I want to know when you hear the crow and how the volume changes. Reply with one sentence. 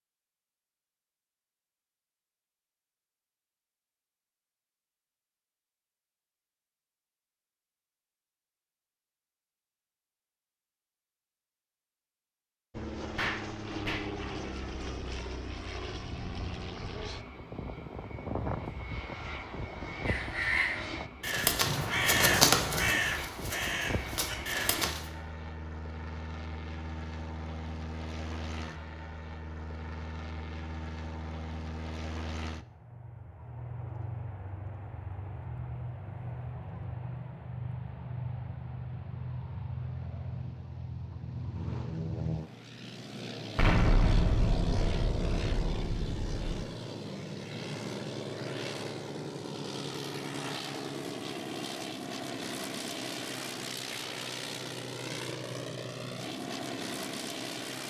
You can hear the crow from 20.1 to 25.1 s, getting louder then quieter.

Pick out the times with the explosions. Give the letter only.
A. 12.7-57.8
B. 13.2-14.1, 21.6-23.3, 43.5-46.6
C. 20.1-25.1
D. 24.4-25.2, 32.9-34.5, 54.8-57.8
B.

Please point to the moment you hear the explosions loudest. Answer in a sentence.
The volume of the explosions peaks at 44 seconds.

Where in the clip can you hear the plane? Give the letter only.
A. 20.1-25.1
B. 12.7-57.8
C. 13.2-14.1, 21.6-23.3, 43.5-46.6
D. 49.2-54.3
B.